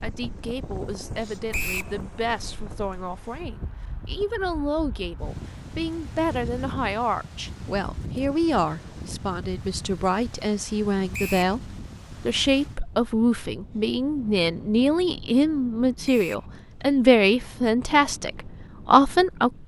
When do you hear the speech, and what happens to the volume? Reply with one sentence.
You can hear the speech from 0.0 to 19.5 s, getting louder.